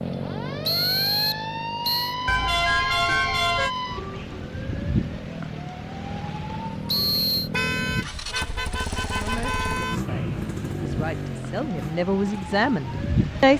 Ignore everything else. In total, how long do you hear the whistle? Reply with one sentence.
You can hear the whistle for 3 seconds altogether.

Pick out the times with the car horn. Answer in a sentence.
You can hear the car horn from 2.2 to 3.7 s and from 7.5 to 10.0 s.